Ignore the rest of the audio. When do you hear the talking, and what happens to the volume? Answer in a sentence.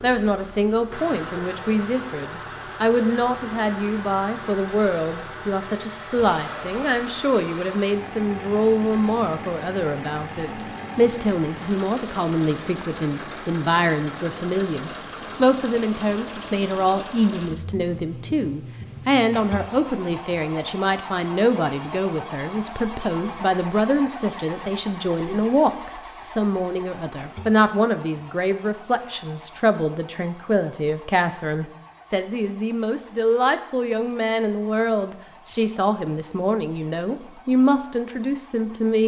The talking can be heard from 0.0 to 39.0 s, at a steady volume.